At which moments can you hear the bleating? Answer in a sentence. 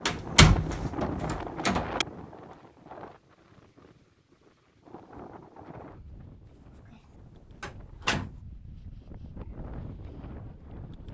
The bleating can't be heard in this clip.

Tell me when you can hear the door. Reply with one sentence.
You can hear the door from 0.1 to 2.0 s, from 6.5 to 7.0 s and from 7.6 to 8.4 s.